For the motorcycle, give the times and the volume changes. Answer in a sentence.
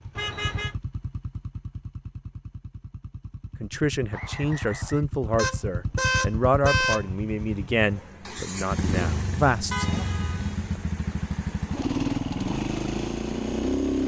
The motorcycle can be heard from 0.0 to 14.0 s, getting louder.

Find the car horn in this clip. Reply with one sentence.
You can hear the car horn from 0.1 to 0.8 s, from 5.3 to 7.0 s and from 9.7 to 10.7 s.